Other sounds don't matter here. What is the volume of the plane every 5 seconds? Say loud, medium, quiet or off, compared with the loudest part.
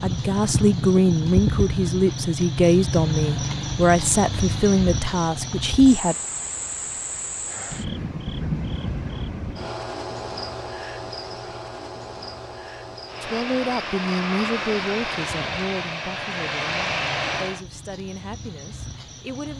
off, off, loud, loud.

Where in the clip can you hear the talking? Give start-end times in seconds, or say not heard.
0.0-6.2, 13.2-19.5.